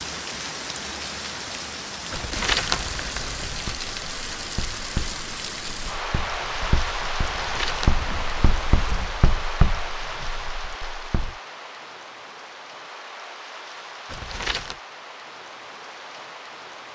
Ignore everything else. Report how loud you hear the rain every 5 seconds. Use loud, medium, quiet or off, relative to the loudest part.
loud, loud, medium, medium.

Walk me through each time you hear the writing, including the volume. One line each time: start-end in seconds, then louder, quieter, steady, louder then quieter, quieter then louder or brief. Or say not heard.
3.5-11.4 quieter then louder.